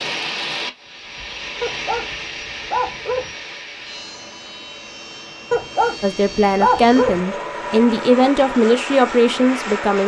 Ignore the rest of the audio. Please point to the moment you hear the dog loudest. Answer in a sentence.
The loudest moment of the dog is at 7 seconds.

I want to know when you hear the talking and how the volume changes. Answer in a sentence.
You can hear the talking from 6.0 to 10.0 s, getting quieter then louder.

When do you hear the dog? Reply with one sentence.
The dog can be heard from 1.6 to 3.4 s and from 5.5 to 7.2 s.